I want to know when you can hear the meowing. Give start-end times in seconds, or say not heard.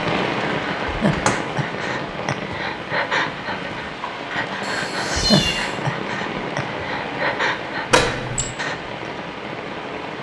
4.6-5.8.